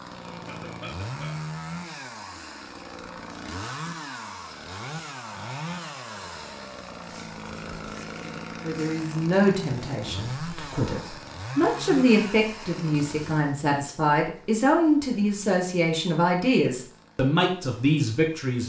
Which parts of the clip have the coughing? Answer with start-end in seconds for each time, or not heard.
0.2-1.6.